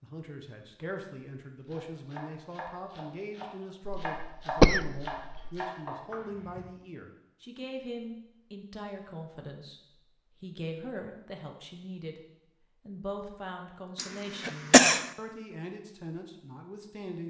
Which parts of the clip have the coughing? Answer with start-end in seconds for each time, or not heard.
3.9-5.5, 13.9-15.1.